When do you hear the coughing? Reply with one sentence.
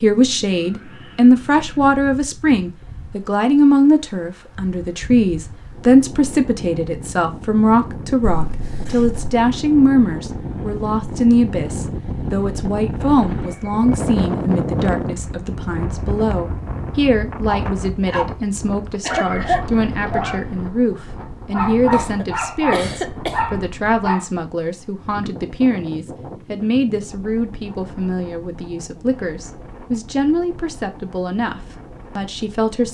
You can hear the coughing from 8.2 to 9.2 s, from 19.1 to 19.6 s and from 21.9 to 23.4 s.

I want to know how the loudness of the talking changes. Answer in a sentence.
The loudness of the talking goes down.